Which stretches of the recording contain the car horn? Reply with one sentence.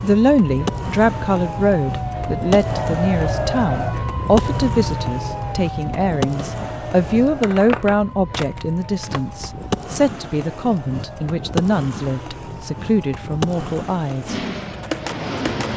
The car horn can't be heard in this clip.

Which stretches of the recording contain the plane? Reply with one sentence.
The plane can be heard from 14.2 to 15.7 s.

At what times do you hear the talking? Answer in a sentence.
The talking can be heard from 0.0 to 14.3 s.